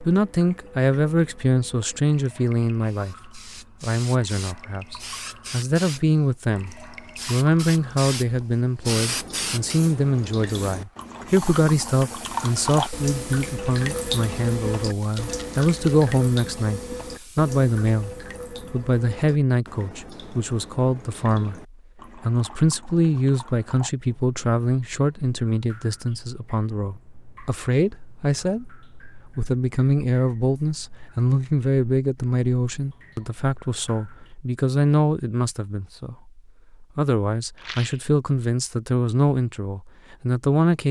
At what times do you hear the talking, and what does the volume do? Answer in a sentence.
You can hear the talking from 0.0 to 40.8 s, at a steady volume.